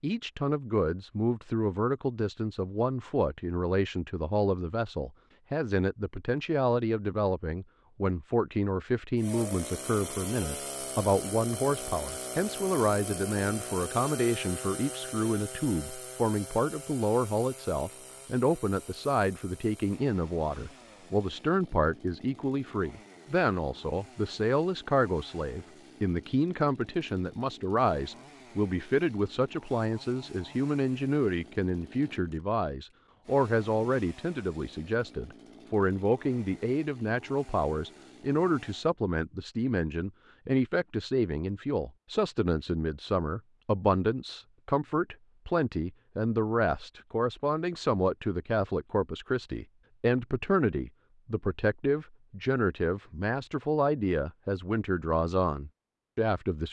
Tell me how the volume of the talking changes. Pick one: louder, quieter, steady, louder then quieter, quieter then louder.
steady.